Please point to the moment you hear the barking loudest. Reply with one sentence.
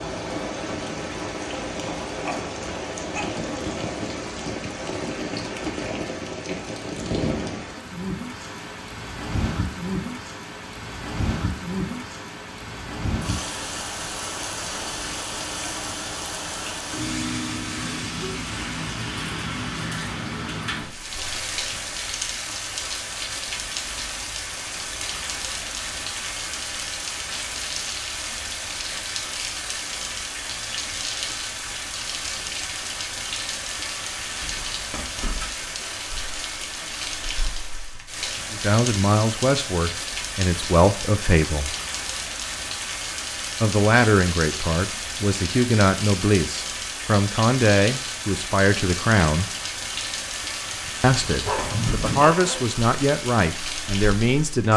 The volume of the barking peaks at 52 seconds.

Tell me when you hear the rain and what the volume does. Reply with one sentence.
You can hear the rain from 0.0 to 54.7 s, at a steady volume.